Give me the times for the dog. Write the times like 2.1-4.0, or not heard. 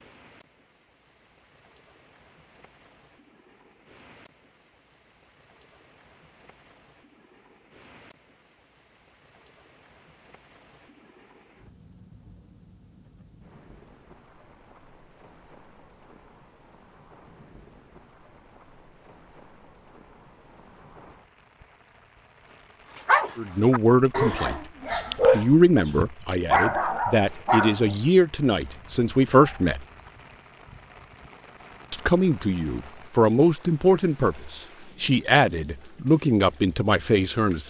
22.9-29.8.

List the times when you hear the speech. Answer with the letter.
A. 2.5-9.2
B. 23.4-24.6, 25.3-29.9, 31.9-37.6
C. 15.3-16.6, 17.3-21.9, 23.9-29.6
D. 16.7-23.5
B.